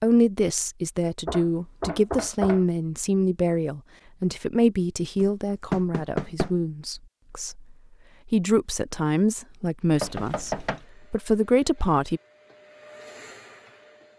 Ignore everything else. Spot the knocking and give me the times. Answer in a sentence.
You can hear the knocking from 1.2 to 2.6 s, from 5.2 to 6.5 s and from 9.9 to 10.8 s.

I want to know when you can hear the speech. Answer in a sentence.
The speech can be heard from 0.0 to 12.2 s.